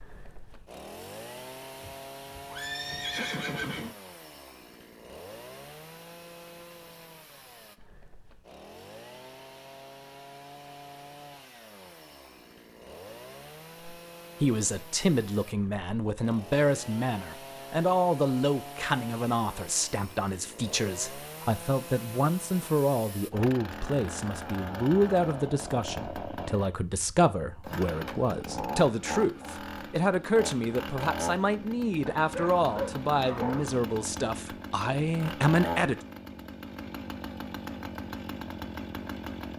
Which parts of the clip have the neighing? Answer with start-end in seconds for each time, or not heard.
1.8-4.0.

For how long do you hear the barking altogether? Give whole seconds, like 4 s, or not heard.
2 s.